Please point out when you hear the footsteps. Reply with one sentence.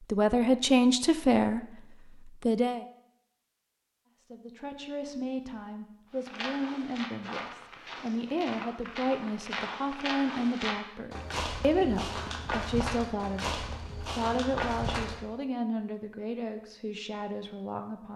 The footsteps can be heard from 6.1 to 15.2 s.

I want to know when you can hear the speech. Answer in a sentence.
The speech can be heard from 0.0 to 2.9 s and from 4.2 to 18.1 s.